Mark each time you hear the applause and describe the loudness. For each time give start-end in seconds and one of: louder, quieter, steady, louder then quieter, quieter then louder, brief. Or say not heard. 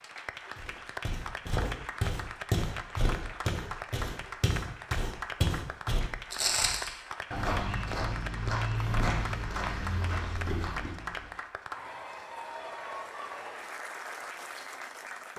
0.0-15.3 steady.